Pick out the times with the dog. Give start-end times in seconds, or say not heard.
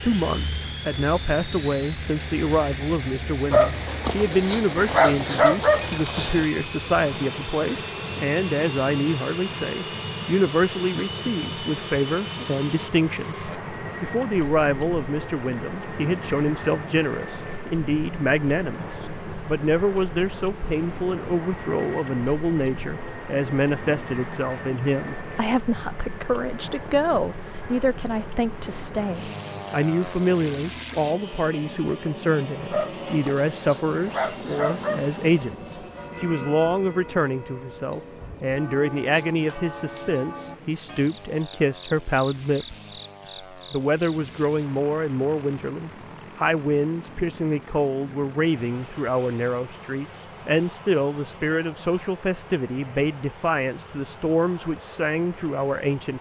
3.5-6.5, 32.7-35.3.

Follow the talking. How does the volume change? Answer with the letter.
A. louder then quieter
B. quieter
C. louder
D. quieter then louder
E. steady
E.